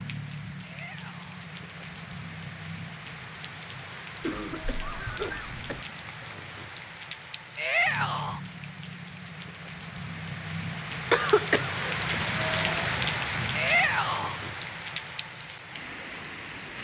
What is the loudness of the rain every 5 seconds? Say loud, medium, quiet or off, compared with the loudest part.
medium, medium, loud, medium.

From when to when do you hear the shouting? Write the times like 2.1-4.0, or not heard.
0.6-1.4, 7.5-8.4, 13.5-14.4.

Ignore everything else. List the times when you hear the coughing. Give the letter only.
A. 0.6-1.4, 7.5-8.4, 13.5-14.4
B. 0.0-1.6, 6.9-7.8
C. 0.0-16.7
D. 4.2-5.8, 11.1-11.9
D.